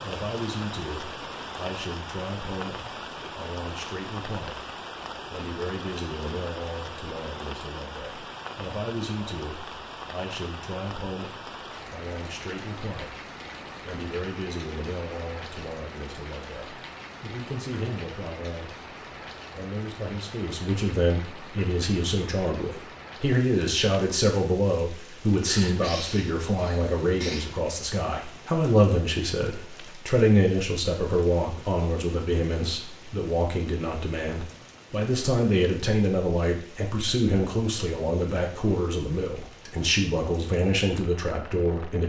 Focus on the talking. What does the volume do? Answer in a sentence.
The volume of the talking goes up.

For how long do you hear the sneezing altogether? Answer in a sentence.
The sneezing can be heard for 2 seconds in total.